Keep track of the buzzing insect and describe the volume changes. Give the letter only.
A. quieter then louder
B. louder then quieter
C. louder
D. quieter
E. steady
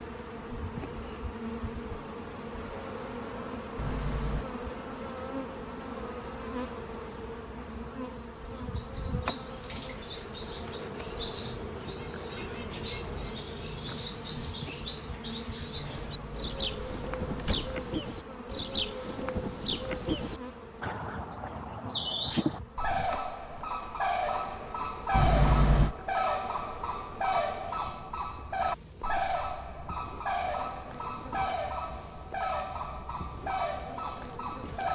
D.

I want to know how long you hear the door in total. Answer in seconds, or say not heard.
3 s.